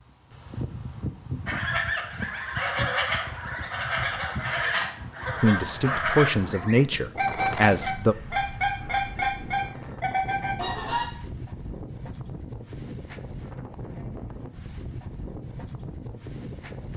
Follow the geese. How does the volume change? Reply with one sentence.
The volume of the geese stays about the same.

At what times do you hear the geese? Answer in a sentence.
You can hear the geese from 1.4 to 11.1 s.